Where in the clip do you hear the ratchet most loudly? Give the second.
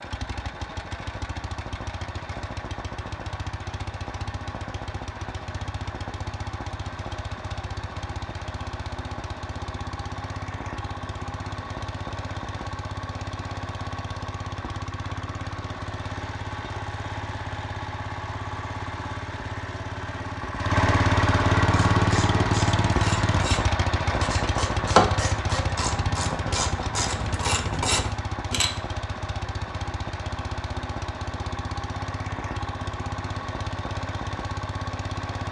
25 s.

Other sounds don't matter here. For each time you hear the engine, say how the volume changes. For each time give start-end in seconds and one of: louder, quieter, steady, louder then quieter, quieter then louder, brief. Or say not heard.
0.0-35.4 louder then quieter.